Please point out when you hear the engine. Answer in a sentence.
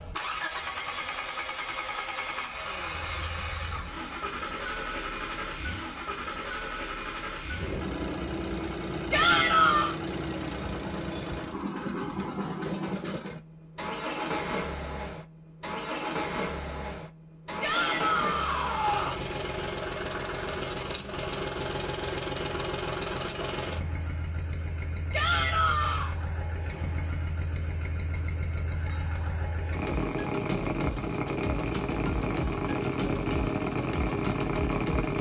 You can hear the engine from 0.0 to 35.1 s.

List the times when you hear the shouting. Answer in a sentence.
The shouting can be heard from 9.1 to 9.9 s, from 17.6 to 19.2 s and from 25.1 to 26.1 s.